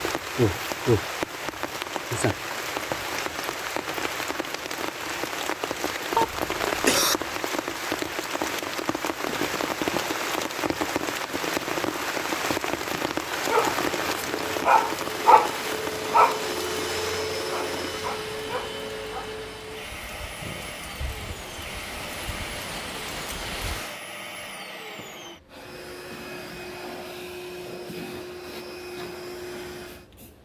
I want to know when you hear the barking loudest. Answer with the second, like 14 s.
15 s.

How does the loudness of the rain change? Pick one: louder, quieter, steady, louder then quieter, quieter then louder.
quieter.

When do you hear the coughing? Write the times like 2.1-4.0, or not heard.
6.2-7.2.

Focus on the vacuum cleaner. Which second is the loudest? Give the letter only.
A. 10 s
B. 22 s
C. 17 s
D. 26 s
C.